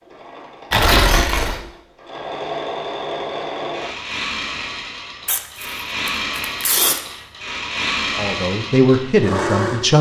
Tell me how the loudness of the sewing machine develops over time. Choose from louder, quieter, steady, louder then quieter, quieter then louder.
louder.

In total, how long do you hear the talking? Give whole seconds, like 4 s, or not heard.
2 s.